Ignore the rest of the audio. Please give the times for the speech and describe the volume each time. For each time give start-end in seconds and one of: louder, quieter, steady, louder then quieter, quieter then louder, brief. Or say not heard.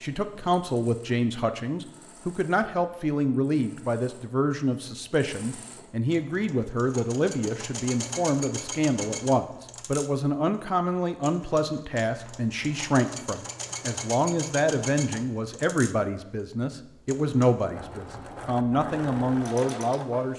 0.0-20.3 steady.